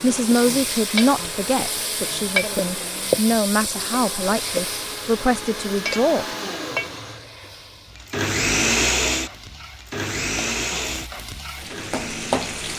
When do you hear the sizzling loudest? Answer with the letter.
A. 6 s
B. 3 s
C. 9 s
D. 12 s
B.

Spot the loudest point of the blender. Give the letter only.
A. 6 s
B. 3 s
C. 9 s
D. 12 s
C.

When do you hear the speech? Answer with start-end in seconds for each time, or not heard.
0.0-6.2.